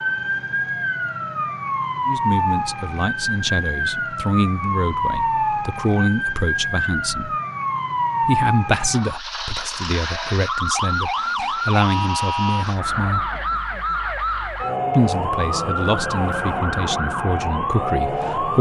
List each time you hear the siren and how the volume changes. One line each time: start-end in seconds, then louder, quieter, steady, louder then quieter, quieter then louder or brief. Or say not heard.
0.0-18.5 steady.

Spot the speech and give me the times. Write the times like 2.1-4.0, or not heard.
2.0-7.3, 8.2-13.3, 14.9-18.5.